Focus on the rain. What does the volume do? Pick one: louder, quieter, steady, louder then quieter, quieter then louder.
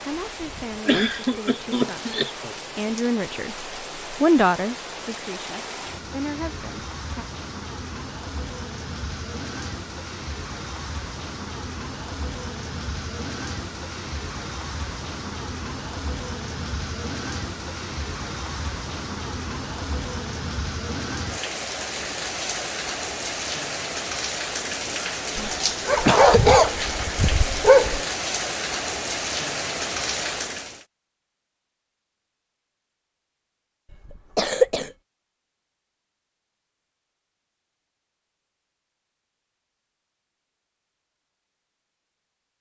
louder.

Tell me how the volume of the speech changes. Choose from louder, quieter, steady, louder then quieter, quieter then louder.
louder then quieter.